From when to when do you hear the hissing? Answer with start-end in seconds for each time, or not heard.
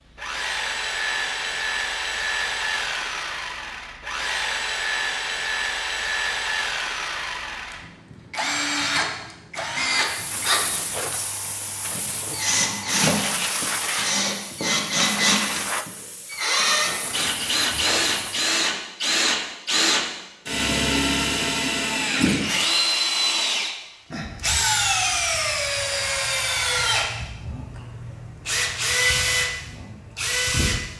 9.9-18.5.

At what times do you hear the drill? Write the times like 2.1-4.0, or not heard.
0.1-30.9.